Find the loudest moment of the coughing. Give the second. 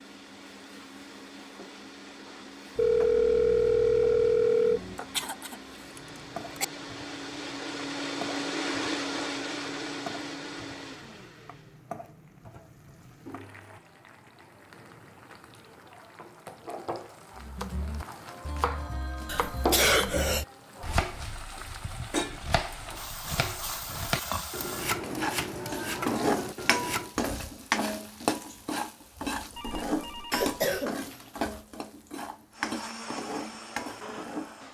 20 s.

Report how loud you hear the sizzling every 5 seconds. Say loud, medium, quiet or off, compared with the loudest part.
quiet, quiet, quiet, medium, medium, loud, medium.